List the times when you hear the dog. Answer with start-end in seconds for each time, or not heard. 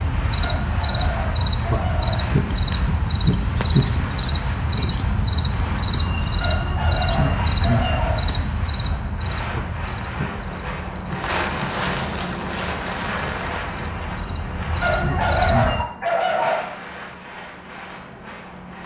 0.4-2.3, 6.4-8.3, 14.8-16.8.